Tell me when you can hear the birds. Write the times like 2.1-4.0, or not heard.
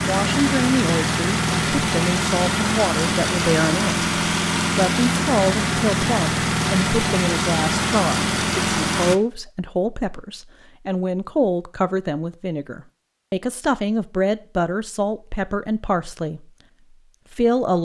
not heard.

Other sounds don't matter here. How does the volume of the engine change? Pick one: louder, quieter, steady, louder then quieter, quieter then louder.
steady.